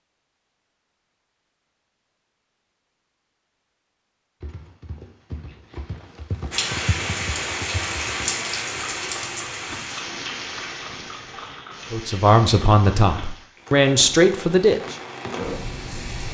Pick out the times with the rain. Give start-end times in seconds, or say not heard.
6.5-16.3.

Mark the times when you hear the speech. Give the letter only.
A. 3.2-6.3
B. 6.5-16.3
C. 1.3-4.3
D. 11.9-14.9
D.